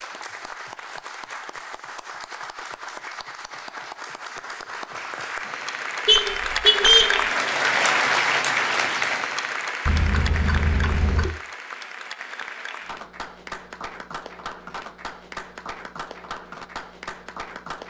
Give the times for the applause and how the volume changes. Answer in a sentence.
The applause can be heard from 0.0 to 17.8 s, getting louder then quieter.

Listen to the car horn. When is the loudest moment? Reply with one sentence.
The loudest moment of the car horn is at 7 seconds.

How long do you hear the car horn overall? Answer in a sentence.
You can hear the car horn for 3 seconds altogether.